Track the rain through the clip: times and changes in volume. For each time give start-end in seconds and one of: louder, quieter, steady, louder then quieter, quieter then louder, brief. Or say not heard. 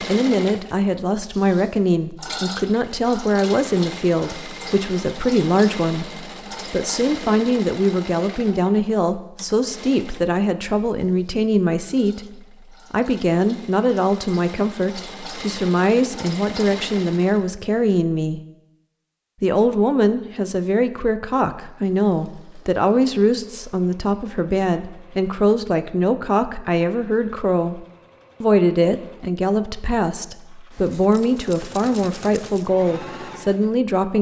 not heard.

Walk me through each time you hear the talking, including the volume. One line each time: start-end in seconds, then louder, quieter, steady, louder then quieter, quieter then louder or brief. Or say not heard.
0.0-18.4 steady
19.4-34.1 steady.